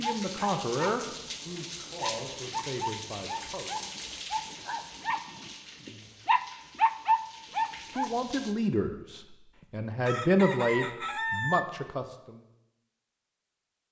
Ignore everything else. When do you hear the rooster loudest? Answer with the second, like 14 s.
11 s.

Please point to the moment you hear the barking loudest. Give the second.
7 s.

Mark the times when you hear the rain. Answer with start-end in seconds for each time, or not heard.
0.0-8.6.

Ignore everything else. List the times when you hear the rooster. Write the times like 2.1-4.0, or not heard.
9.6-11.6.